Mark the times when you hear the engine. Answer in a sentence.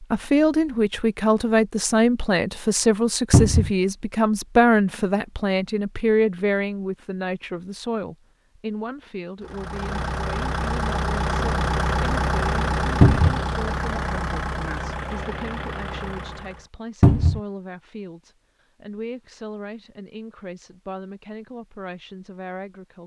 The engine can be heard from 9.4 to 16.6 s.